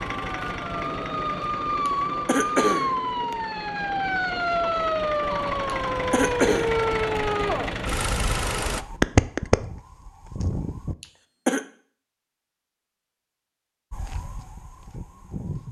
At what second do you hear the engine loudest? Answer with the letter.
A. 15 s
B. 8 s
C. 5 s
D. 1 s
B.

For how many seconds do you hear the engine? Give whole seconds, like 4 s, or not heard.
9 s.